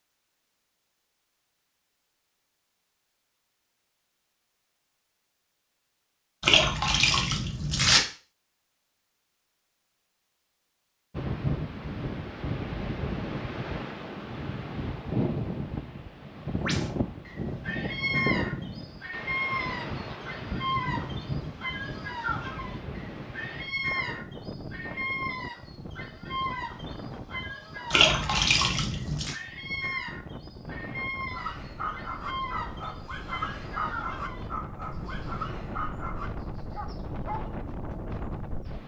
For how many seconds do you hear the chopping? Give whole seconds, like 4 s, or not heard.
not heard.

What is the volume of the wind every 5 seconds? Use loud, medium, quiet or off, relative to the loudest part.
off, off, loud, loud, medium, medium, medium, medium.